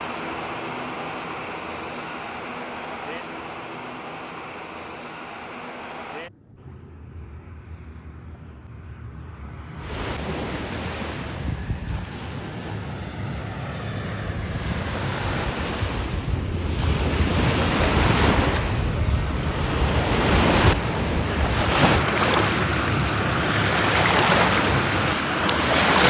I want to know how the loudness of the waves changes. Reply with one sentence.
The volume of the waves goes up.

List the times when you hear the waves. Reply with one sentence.
The waves can be heard from 9.8 to 26.0 s.